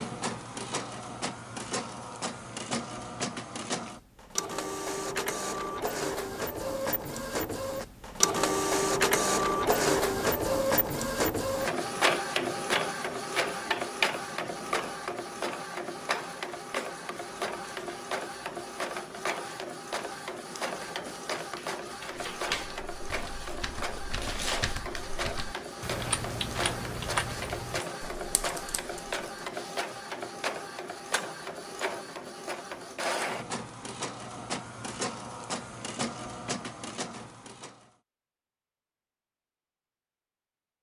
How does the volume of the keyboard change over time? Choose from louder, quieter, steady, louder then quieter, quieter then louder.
louder then quieter.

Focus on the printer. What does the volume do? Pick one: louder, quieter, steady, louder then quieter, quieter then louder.
louder then quieter.